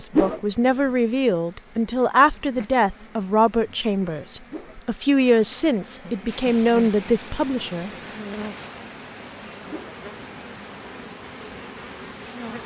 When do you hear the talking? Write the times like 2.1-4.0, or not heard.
0.0-7.9.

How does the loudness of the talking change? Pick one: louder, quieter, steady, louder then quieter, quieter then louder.
steady.